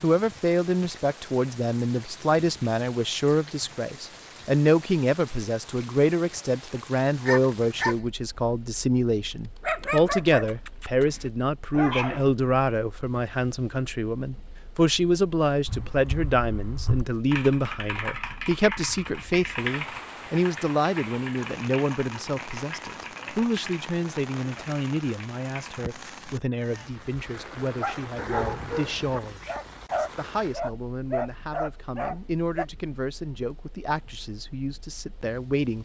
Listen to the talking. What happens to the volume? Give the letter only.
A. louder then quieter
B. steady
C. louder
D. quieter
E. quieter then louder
D.